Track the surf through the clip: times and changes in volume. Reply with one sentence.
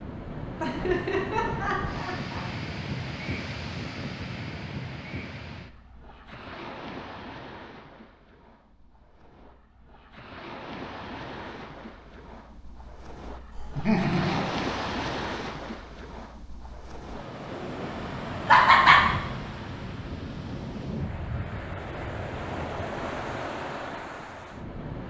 The surf can be heard from 0.0 to 25.0 s, getting quieter then louder.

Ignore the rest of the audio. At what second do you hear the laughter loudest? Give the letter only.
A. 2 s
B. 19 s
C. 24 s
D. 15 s
B.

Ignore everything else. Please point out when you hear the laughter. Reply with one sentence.
The laughter can be heard from 0.6 to 2.5 s, from 13.5 to 14.5 s and from 18.4 to 19.0 s.